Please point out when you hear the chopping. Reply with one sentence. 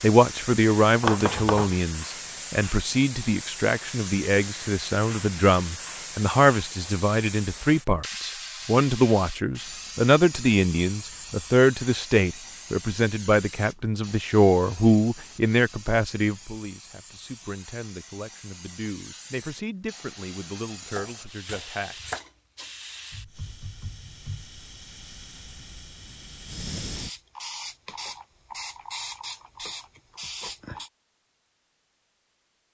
The chopping can be heard from 1.0 to 1.8 s and from 20.9 to 22.2 s.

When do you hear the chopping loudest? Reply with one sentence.
The volume of the chopping peaks at 1 second.